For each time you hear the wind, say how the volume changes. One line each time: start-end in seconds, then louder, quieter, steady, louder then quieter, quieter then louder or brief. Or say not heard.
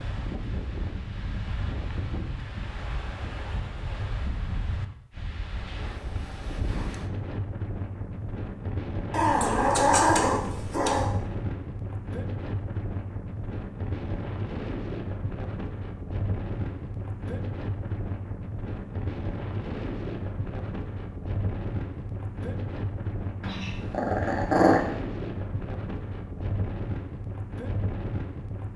0.0-28.7 steady.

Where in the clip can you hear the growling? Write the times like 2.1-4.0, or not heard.
9.1-11.1, 23.4-24.9.